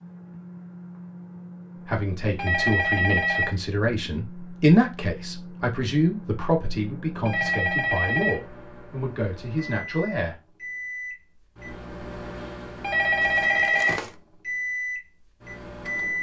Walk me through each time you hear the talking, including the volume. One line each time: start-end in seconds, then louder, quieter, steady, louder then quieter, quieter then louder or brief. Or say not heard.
1.9-10.3 louder then quieter.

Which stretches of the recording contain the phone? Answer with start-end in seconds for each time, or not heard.
2.4-3.5, 7.2-8.4, 12.8-14.0.